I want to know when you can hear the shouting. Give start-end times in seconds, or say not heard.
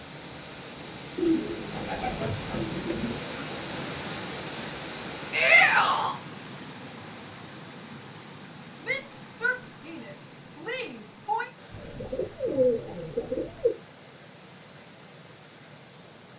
5.3-6.2, 8.8-11.5.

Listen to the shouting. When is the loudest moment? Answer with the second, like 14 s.
6 s.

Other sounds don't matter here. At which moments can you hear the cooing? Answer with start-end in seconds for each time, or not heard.
1.1-3.2, 11.7-13.7.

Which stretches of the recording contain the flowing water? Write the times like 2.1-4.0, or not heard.
0.0-16.3.